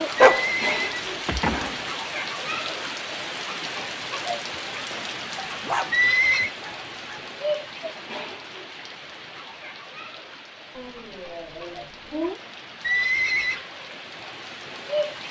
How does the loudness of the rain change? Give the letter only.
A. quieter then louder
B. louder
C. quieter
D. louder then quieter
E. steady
C.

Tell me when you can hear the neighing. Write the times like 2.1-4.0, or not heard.
0.1-1.8, 5.9-6.5, 12.8-13.7.